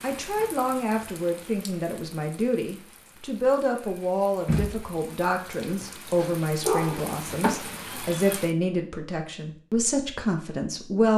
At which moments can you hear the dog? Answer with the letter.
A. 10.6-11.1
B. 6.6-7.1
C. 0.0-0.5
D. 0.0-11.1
B.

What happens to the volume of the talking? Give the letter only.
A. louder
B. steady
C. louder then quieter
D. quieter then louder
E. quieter
B.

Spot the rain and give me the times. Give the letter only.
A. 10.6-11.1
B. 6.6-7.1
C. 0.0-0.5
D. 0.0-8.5
D.